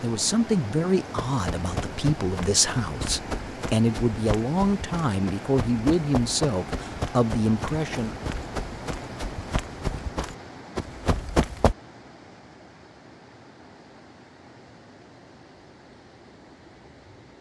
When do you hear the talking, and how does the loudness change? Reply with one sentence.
You can hear the talking from 0.0 to 8.2 s, at a steady volume.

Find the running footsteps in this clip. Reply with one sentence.
You can hear the running footsteps from 1.1 to 11.8 s.